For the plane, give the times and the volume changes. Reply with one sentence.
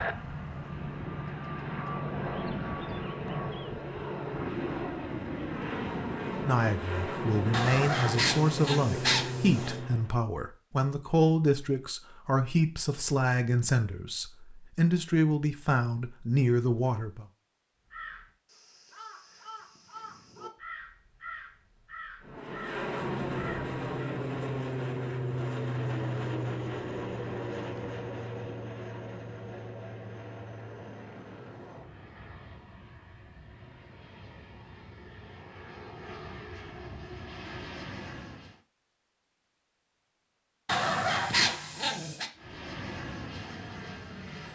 The plane can be heard from 0.0 to 10.2 s, at a steady volume; from 22.2 to 38.6 s, getting quieter then louder; and briefly from 42.4 to 44.5 s.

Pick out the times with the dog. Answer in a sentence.
The dog can be heard from 7.5 to 9.8 s and from 40.6 to 42.3 s.